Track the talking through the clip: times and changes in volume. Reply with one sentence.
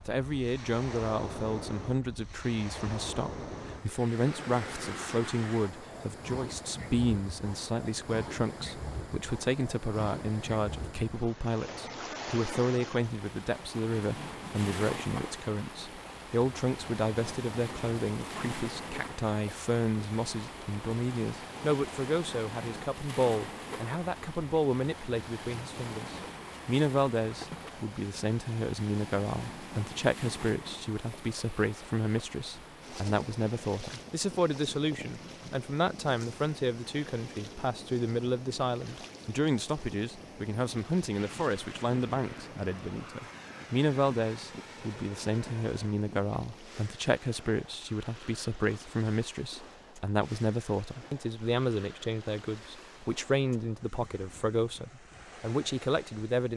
You can hear the talking from 0.1 to 56.5 s, at a steady volume.